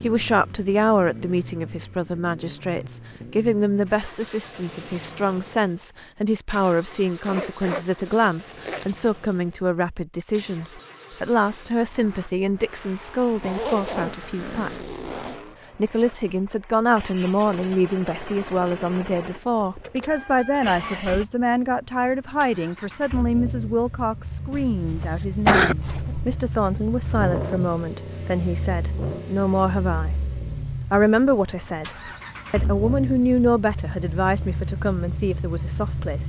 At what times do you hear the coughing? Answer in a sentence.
The coughing can be heard from 24.5 to 25.8 s.